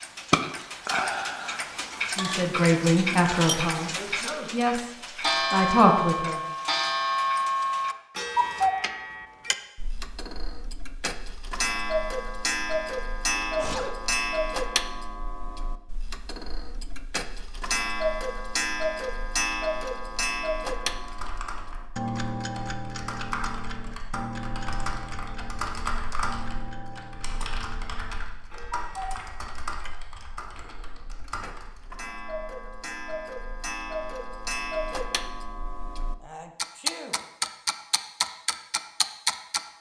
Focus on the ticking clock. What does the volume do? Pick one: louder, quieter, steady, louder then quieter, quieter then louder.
quieter then louder.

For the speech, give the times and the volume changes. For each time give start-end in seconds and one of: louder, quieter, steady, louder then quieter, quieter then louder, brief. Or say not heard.
2.1-6.4 quieter then louder.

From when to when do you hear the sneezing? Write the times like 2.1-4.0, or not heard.
3.9-4.7, 13.3-13.9, 36.2-37.2.